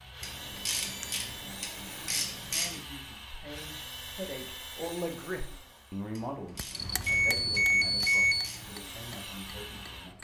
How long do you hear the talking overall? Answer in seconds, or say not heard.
8 s.